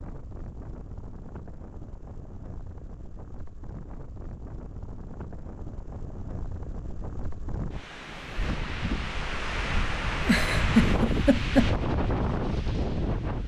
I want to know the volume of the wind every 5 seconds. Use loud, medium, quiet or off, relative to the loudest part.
quiet, medium, loud.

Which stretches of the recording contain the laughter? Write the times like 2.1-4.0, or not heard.
10.2-11.7.